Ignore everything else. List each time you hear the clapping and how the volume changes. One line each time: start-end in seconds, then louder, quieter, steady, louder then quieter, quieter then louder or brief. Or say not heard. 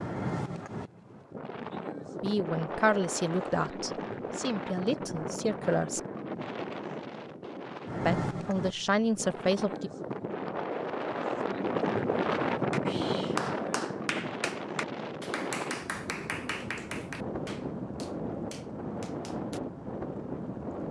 12.7-19.6 quieter.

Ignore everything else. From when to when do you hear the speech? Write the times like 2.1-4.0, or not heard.
2.2-6.0, 8.1-9.9.